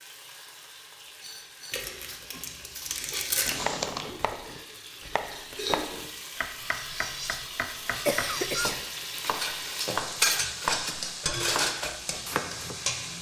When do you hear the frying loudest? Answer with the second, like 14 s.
11 s.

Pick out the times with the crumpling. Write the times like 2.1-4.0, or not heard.
1.7-3.7.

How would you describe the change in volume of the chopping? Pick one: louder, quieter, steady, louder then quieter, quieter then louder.
louder.